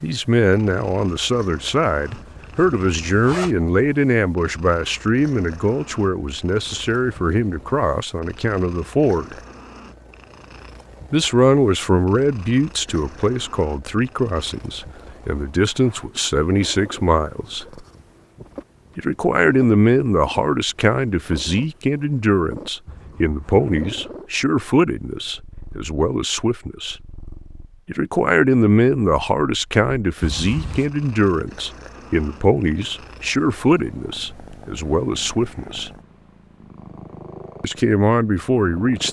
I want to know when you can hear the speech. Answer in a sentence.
The speech can be heard from 0.0 to 9.3 s, from 11.1 to 17.6 s, from 18.9 to 26.9 s, from 27.9 to 35.9 s and from 37.6 to 39.0 s.